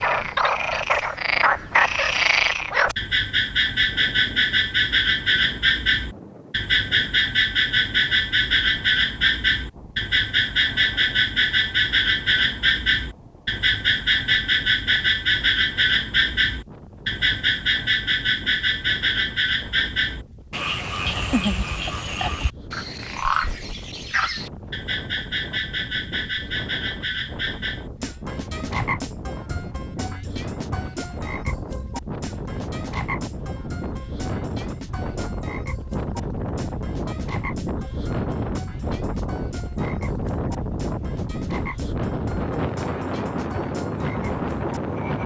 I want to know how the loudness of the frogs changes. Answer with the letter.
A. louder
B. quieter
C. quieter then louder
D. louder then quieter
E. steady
B.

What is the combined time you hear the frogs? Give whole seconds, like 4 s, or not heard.
45 s.